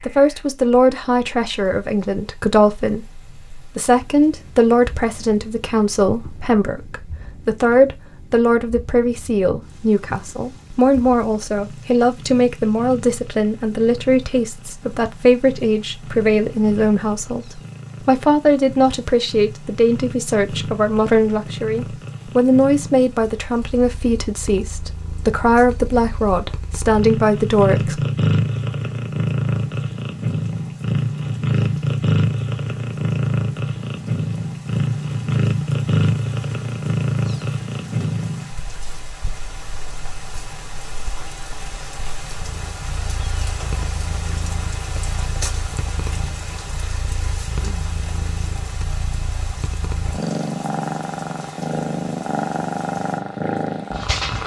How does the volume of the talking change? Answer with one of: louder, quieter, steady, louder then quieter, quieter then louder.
steady.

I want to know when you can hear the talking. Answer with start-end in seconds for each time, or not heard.
0.0-28.0.